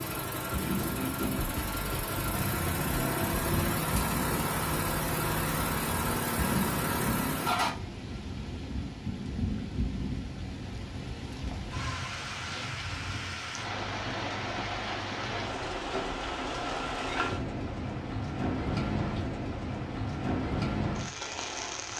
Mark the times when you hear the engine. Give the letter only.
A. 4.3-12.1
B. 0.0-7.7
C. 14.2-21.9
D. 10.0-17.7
B.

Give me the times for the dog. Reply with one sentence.
The dog can't be heard in this clip.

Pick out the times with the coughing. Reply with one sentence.
The coughing can't be heard in this clip.